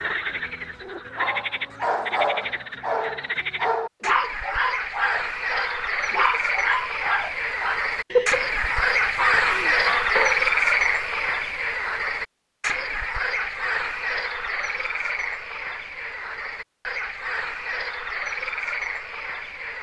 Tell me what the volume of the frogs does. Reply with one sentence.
The volume of the frogs goes up, then down.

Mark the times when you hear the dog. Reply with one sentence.
The dog can be heard from 1.1 to 10.4 s.